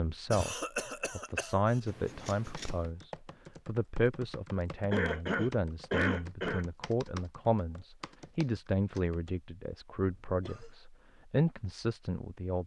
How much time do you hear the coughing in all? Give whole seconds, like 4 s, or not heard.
4 s.